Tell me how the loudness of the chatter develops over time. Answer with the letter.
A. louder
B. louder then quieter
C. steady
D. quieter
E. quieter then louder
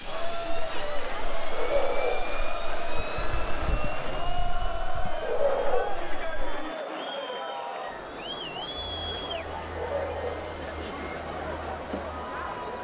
C.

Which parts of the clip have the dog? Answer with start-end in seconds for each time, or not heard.
1.5-2.4, 5.2-6.1, 9.7-10.5.